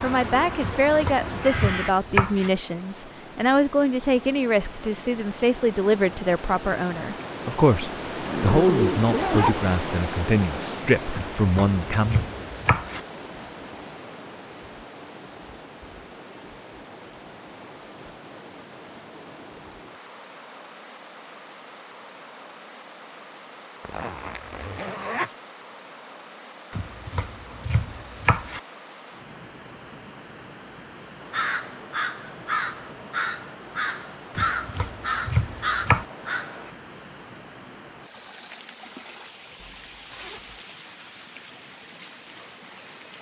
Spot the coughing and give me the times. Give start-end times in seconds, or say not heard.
not heard.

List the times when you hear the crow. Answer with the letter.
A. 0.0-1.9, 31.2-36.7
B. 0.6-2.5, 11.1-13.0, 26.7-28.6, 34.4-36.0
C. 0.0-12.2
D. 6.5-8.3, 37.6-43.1
A.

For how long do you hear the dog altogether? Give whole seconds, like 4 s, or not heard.
not heard.